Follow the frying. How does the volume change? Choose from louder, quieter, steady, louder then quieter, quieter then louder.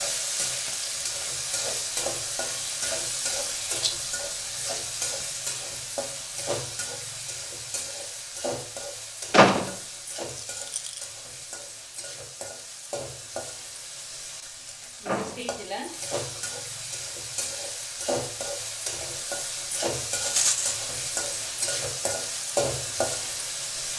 quieter then louder.